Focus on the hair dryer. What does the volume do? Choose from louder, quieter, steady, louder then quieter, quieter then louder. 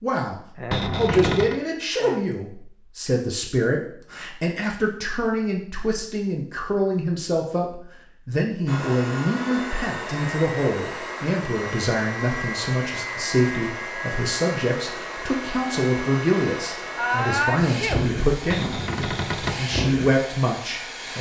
steady.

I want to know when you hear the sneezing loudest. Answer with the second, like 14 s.
17 s.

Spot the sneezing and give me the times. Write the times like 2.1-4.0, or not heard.
0.6-2.2, 16.9-18.0.